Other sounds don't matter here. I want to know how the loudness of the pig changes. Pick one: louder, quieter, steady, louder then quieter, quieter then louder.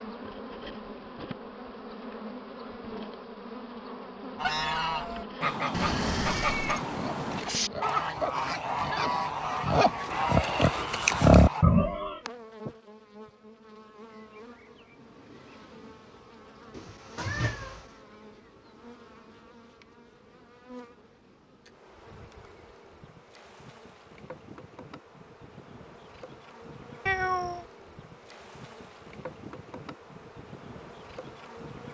louder.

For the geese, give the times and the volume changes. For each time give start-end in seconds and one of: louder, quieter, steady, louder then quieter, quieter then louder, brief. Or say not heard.
4.3-11.7 steady.